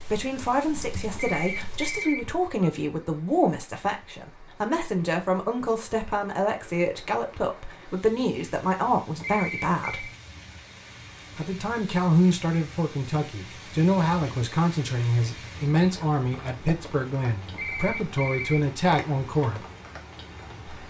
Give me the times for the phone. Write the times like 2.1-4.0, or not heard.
1.1-2.8, 9.2-10.2, 17.5-18.7.